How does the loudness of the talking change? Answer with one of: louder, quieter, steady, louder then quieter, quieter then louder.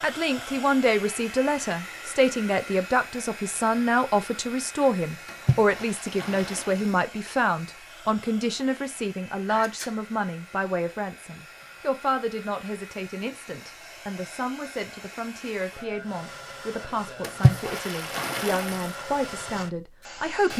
quieter.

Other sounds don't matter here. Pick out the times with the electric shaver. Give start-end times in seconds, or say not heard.
not heard.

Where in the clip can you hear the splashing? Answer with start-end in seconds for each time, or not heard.
5.2-7.0, 17.2-18.9.